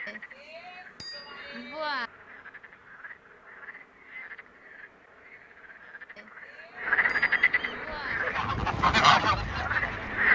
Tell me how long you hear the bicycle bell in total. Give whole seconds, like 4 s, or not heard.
4 s.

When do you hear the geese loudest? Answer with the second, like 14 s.
9 s.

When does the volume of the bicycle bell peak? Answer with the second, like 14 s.
2 s.